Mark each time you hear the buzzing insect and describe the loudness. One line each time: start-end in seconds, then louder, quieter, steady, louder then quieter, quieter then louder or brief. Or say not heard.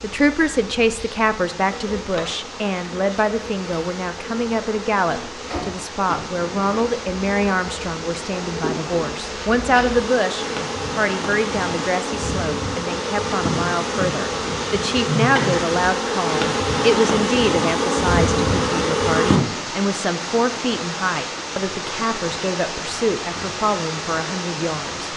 0.1-19.4 louder.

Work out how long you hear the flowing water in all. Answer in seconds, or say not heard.
25 s.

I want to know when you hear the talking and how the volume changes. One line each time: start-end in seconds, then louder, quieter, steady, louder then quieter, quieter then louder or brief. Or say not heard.
0.0-24.9 steady.